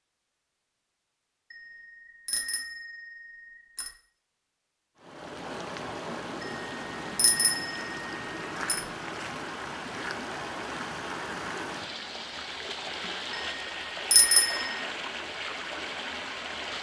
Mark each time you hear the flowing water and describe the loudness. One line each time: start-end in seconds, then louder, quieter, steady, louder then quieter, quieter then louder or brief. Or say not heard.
5.0-16.7 steady.